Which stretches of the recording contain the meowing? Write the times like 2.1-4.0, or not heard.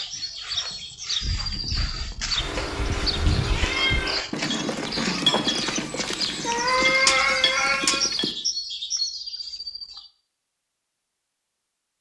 2.4-4.2, 6.5-8.1.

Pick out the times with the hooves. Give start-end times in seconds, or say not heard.
1.2-8.3.